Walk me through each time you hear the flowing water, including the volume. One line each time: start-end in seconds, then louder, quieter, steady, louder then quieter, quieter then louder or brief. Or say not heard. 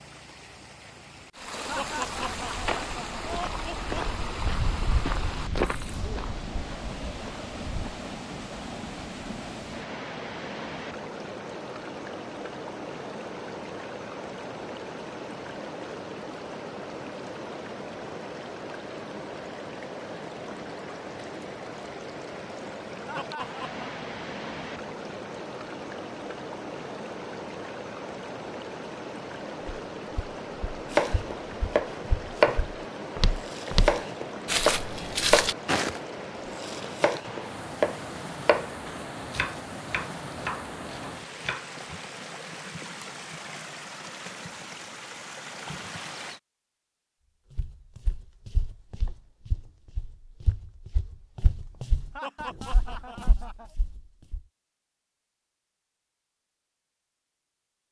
0.0-46.4 steady.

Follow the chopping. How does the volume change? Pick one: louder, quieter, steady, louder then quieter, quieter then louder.
quieter.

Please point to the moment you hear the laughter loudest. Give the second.
2 s.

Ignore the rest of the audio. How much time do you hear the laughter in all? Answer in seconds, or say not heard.
5 s.